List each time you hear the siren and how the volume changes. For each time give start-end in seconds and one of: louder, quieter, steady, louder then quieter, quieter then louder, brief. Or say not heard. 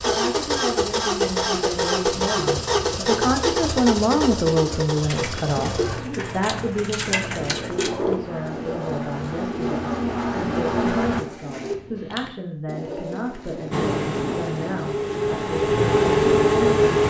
not heard.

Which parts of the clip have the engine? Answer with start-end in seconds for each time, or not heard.
0.0-11.2, 13.7-17.0.